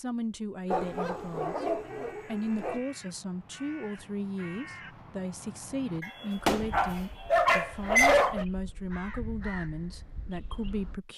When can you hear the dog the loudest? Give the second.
8 s.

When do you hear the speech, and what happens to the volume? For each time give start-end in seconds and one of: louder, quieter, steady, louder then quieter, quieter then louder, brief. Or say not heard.
0.0-1.6 brief
2.2-11.1 steady.